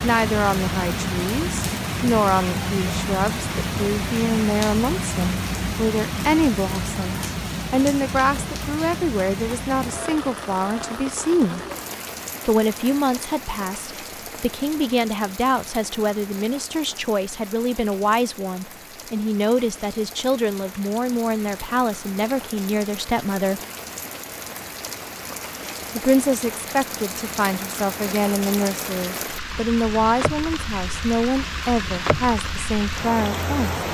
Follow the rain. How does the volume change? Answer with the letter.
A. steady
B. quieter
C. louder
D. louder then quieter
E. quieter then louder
E.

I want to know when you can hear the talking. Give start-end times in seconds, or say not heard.
0.0-11.6, 12.4-23.6, 25.9-33.8.